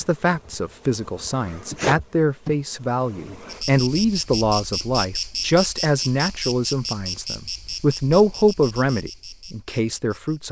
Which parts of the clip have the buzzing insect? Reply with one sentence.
The buzzing insect can be heard from 0.0 to 10.4 s.